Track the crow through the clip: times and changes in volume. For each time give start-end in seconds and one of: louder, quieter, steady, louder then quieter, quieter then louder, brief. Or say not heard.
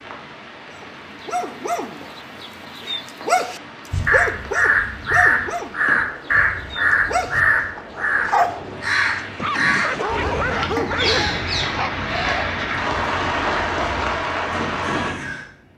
3.9-15.4 quieter.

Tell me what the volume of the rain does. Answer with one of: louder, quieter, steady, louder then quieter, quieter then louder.
louder.